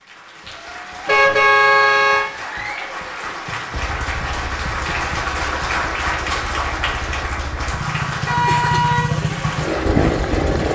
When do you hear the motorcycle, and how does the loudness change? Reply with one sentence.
You can hear the motorcycle from 3.7 to 10.7 s, getting louder.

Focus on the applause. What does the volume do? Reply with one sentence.
The volume of the applause goes up, then down.